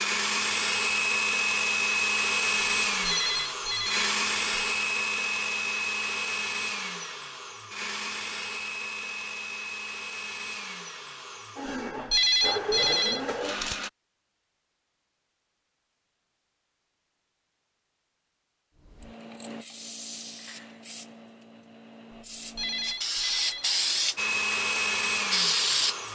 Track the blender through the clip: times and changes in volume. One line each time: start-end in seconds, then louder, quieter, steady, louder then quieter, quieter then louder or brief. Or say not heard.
0.0-13.9 quieter
24.1-26.1 brief.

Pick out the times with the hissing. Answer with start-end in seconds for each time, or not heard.
18.9-26.1.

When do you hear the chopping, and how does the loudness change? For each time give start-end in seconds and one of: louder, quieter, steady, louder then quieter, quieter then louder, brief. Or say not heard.
not heard.